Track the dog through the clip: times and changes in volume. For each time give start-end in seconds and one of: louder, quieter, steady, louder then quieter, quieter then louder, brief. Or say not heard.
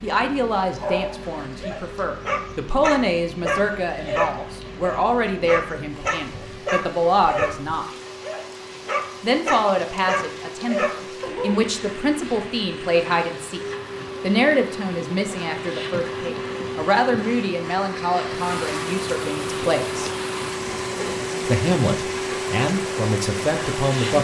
0.8-11.7 steady.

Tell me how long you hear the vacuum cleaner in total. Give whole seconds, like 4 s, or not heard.
24 s.